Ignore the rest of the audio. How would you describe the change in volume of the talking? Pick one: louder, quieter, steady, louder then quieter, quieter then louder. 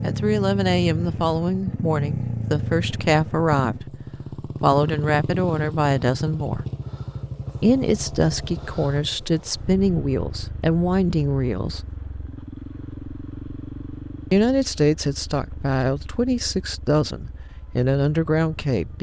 steady.